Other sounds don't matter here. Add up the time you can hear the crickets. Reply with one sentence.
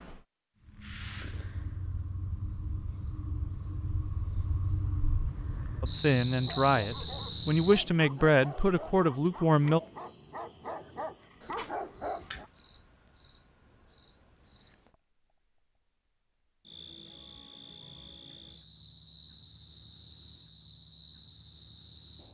You can hear the crickets for 22 seconds altogether.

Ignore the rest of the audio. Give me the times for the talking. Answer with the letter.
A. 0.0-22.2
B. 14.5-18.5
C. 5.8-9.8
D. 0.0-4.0
C.